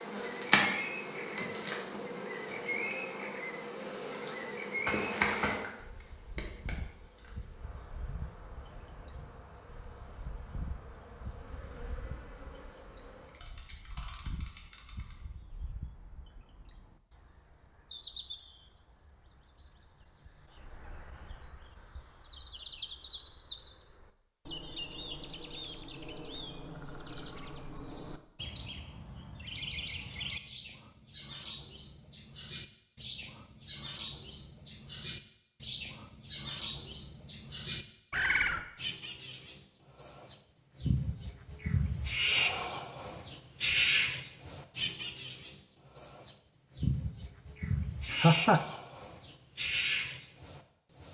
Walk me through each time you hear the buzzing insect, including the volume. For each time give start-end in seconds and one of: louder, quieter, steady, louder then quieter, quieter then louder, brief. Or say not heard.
0.0-15.2 quieter.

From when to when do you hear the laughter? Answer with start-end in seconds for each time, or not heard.
48.1-48.6.